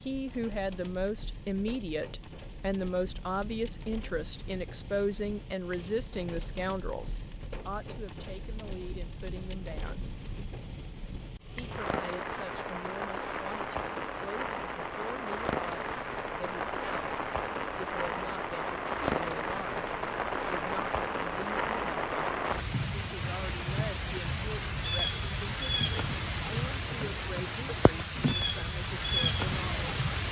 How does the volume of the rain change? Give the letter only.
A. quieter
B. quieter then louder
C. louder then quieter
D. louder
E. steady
D.